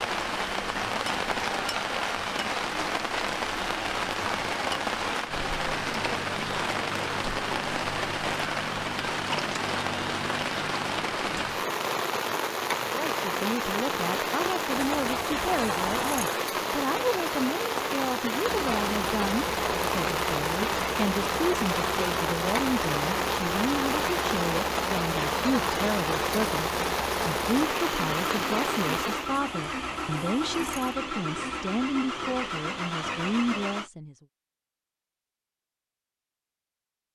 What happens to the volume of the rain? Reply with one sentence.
The volume of the rain stays about the same.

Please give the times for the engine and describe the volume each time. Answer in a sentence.
The engine can be heard from 18.4 to 33.9 s, at a steady volume.